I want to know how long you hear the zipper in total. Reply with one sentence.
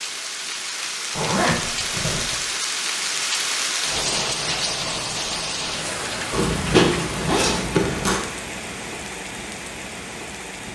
The zipper can be heard for 3 seconds in total.